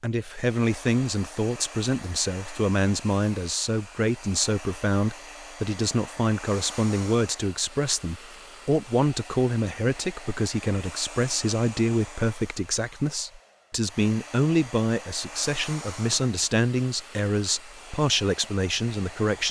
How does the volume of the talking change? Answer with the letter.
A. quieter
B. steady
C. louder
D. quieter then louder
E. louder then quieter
B.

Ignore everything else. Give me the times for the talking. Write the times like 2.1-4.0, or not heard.
0.0-19.4.